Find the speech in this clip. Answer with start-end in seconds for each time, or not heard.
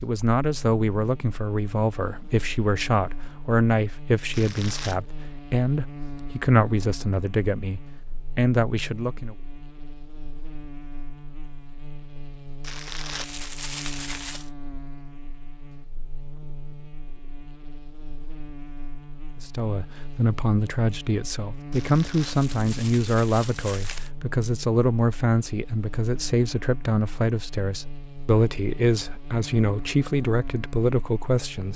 0.0-9.3, 19.4-31.7.